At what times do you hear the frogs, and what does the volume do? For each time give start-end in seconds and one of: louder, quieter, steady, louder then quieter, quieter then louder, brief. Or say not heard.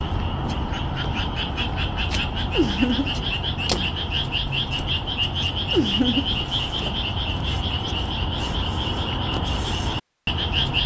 0.0-10.8 steady.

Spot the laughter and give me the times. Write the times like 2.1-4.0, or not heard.
2.5-3.1, 5.7-6.3.